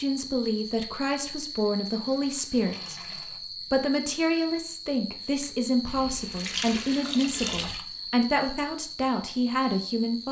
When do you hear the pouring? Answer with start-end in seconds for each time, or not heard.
1.9-3.4, 5.8-7.8.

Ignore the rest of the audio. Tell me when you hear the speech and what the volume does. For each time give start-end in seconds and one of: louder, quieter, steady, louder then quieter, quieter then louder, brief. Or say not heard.
0.0-10.2 steady.